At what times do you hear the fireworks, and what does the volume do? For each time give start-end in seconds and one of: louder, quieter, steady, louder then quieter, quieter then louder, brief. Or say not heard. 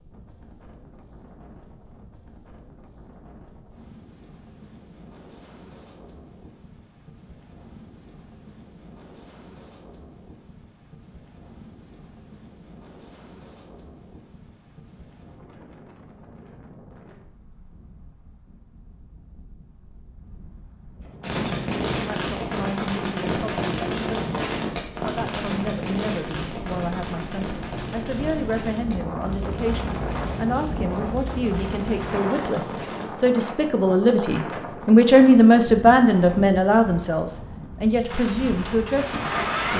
21.2-33.1 quieter
38.0-39.7 brief.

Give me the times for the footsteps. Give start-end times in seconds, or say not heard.
not heard.